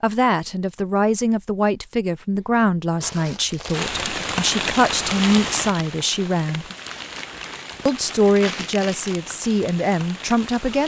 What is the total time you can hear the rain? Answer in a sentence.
You can hear the rain for 7 seconds altogether.